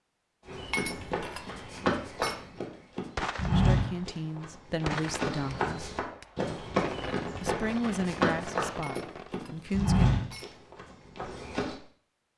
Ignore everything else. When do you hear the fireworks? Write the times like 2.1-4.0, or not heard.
3.1-9.5.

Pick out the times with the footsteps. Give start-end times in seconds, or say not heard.
0.5-11.8.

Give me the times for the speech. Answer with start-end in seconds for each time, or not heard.
3.5-5.9, 7.4-10.1.